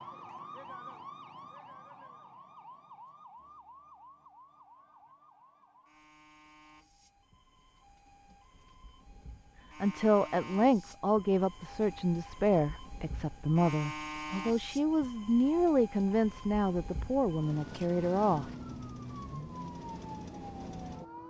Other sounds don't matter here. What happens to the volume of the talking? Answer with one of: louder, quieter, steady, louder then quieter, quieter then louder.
steady.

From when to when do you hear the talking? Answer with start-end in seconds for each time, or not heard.
9.8-18.5.